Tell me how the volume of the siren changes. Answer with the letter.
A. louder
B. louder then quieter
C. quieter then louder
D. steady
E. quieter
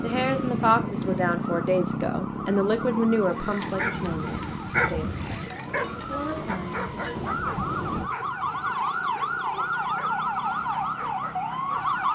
A.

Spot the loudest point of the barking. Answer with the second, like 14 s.
5 s.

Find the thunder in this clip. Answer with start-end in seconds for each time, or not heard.
3.5-8.1.